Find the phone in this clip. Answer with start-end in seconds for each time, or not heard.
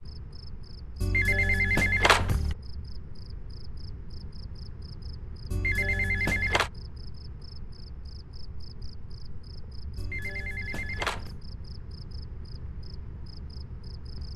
1.0-2.5, 5.5-6.7, 9.9-11.4.